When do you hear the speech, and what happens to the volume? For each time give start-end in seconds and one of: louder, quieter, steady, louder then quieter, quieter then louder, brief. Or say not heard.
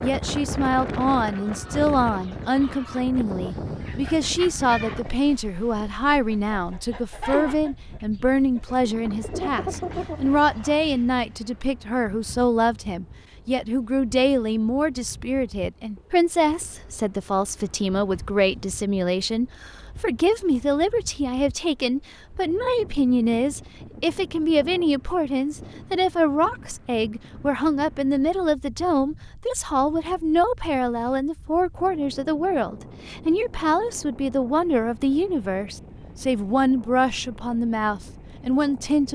0.0-39.1 steady.